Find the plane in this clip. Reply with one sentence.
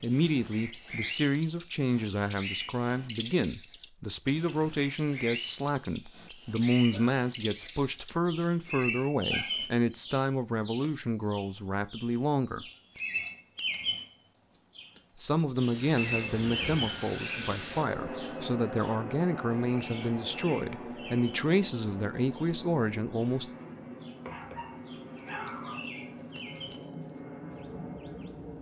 The plane can be heard from 15.6 to 28.5 s.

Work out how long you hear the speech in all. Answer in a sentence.
The speech can be heard for 21 seconds in total.